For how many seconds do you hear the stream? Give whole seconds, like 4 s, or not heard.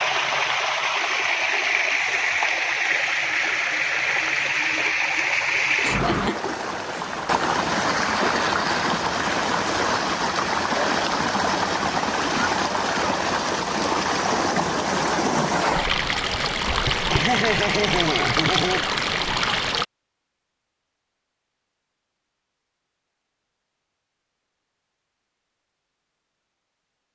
20 s.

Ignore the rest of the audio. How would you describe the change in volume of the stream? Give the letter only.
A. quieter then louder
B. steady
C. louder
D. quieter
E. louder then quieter
B.